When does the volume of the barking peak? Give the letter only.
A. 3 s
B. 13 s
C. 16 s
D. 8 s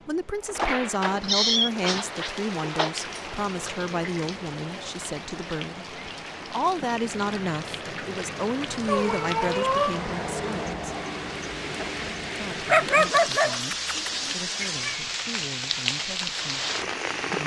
B.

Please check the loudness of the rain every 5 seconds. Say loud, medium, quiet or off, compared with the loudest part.
medium, medium, loud, loud.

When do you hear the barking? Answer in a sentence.
You can hear the barking from 12.7 to 14.3 s.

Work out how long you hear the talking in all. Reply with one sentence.
You can hear the talking for 16 seconds altogether.